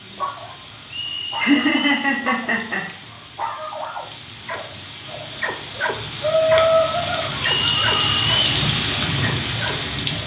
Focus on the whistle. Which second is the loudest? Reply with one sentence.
The loudest moment of the whistle is at 8 seconds.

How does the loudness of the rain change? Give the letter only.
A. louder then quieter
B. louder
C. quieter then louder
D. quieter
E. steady
B.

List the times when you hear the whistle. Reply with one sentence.
The whistle can be heard from 0.8 to 2.1 s and from 7.5 to 8.4 s.